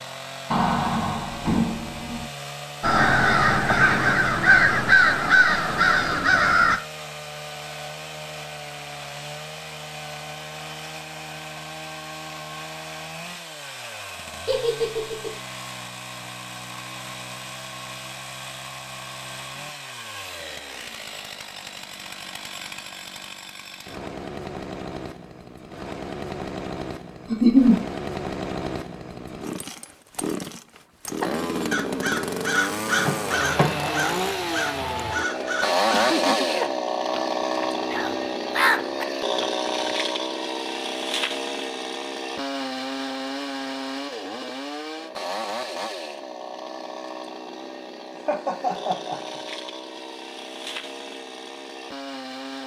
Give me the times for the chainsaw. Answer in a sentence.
The chainsaw can be heard from 0.0 to 52.6 s.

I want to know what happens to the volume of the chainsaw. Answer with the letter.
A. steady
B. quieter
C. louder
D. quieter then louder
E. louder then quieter
E.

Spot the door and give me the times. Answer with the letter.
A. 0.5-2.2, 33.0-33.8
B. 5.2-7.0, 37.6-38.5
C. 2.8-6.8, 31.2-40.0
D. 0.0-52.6
A.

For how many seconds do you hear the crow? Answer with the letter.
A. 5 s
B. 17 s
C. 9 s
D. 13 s
D.